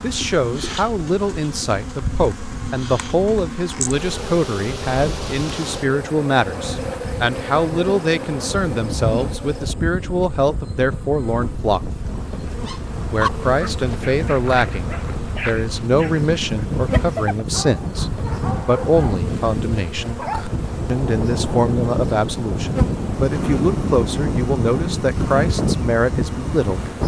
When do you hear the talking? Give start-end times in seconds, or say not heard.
0.0-11.8, 13.1-20.1, 20.9-26.9.